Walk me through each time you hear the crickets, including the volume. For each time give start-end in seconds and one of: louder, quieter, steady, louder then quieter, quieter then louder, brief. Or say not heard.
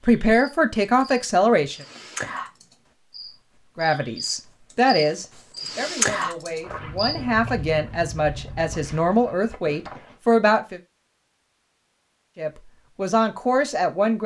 0.3-7.2 louder.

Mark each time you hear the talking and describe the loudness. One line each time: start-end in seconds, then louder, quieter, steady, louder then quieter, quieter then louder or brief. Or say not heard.
0.0-1.8 brief
3.8-10.8 quieter then louder
12.3-14.2 brief.